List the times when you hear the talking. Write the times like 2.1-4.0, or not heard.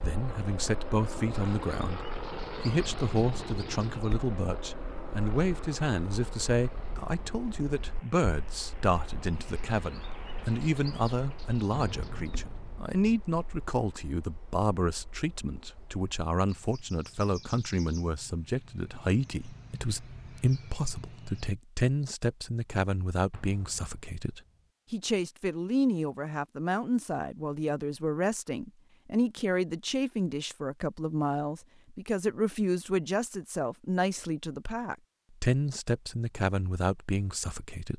0.0-37.9.